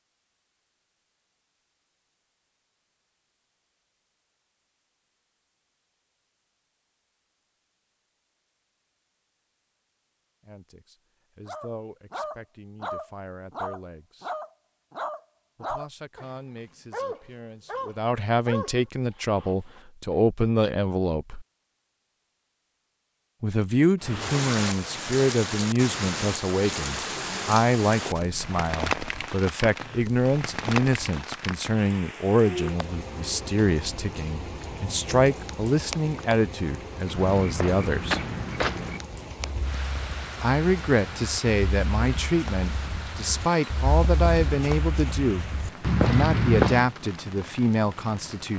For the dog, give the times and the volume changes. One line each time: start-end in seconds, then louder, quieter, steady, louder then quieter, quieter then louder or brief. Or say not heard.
11.4-19.8 steady.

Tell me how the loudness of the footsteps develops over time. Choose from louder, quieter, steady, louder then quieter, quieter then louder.
quieter then louder.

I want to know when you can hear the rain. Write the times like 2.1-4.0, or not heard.
24.0-48.5.